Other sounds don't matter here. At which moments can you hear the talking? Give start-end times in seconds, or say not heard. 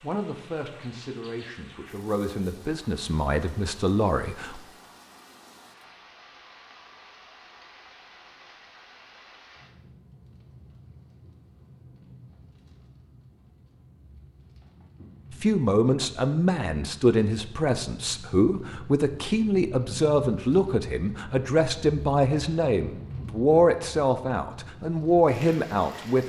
0.0-4.6, 15.3-26.2.